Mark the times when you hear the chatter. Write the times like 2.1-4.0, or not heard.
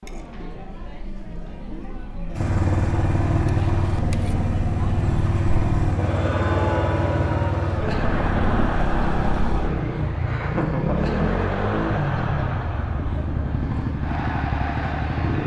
0.0-15.4.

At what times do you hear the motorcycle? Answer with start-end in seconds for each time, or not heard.
2.4-15.4.